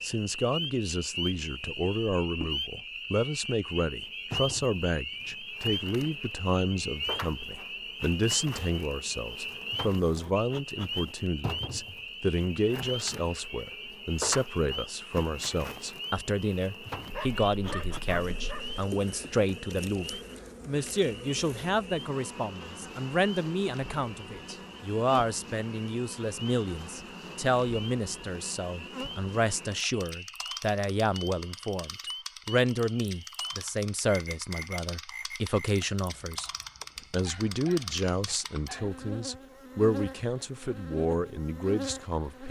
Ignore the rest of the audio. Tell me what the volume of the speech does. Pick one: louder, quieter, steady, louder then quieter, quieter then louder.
steady.